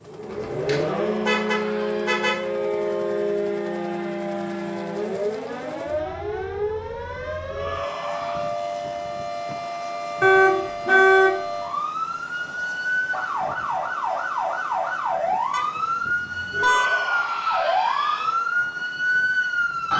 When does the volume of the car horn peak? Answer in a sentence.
The loudest moment of the car horn is at 11 seconds.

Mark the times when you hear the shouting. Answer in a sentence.
You can hear the shouting from 0.8 to 2.2 s, from 7.5 to 8.6 s and from 16.5 to 18.4 s.